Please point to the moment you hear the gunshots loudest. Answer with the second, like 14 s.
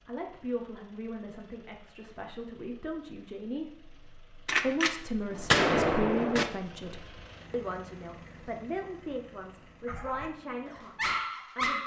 6 s.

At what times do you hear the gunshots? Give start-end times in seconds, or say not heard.
4.5-6.5.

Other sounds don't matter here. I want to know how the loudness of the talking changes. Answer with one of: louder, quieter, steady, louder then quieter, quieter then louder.
louder then quieter.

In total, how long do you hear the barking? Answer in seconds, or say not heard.
2 s.